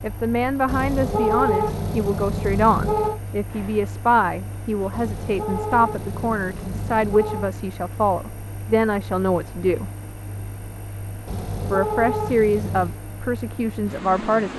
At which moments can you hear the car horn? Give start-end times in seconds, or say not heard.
0.7-3.2, 4.9-7.5, 11.2-13.0.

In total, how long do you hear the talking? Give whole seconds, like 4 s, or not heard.
13 s.